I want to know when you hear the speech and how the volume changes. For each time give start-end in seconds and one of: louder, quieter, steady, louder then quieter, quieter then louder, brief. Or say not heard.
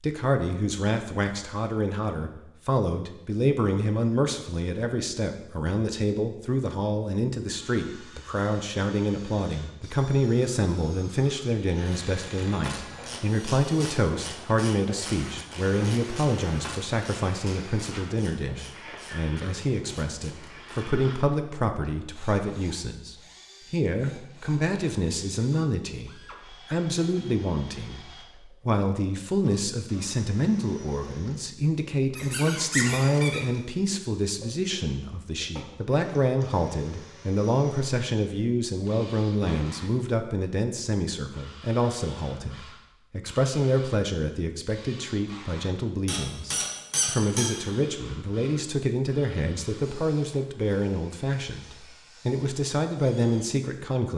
0.0-54.1 steady.